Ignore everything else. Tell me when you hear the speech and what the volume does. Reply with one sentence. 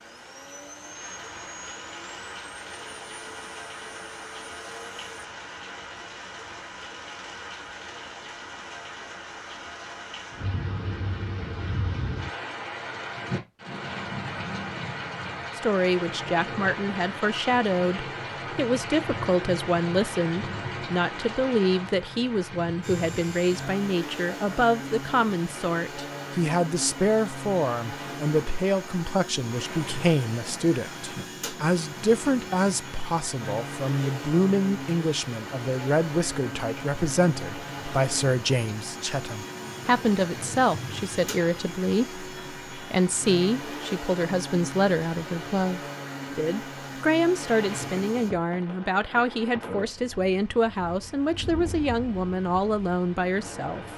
The speech can be heard from 15.6 to 53.9 s, at a steady volume.